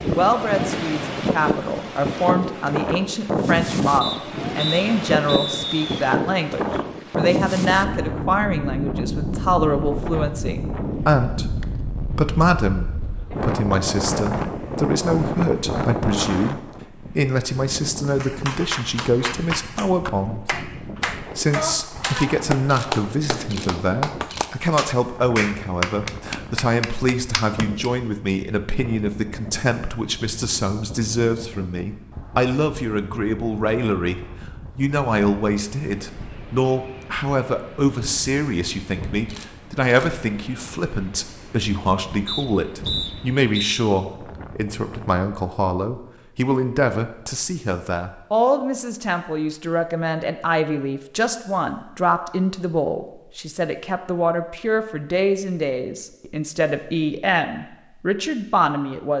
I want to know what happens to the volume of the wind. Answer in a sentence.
The loudness of the wind goes down.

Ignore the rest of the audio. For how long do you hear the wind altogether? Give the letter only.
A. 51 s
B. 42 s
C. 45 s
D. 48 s
C.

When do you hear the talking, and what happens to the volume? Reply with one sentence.
The talking can be heard from 0.0 to 59.1 s, at a steady volume.